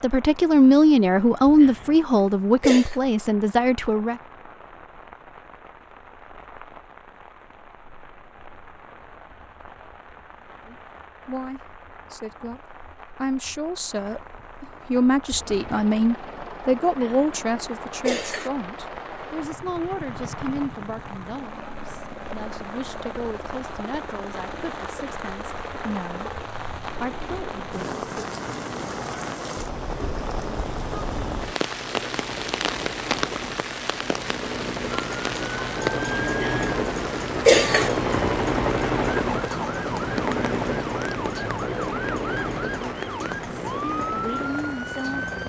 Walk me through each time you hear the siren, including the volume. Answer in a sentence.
The siren can be heard from 34.9 to 45.4 s, at a steady volume.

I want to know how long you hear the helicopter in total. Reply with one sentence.
The helicopter can be heard for 30 seconds in total.